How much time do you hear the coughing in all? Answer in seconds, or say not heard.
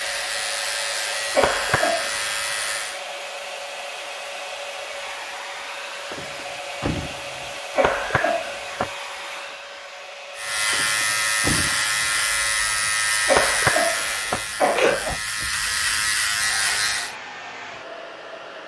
4 s.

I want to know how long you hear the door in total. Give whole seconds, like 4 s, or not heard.
3 s.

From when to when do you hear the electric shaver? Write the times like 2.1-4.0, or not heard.
0.0-3.0, 10.3-17.1.